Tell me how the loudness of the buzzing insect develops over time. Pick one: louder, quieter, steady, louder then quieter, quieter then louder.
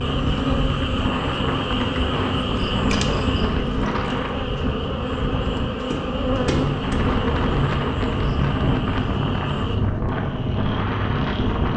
steady.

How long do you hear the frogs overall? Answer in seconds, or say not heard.
12 s.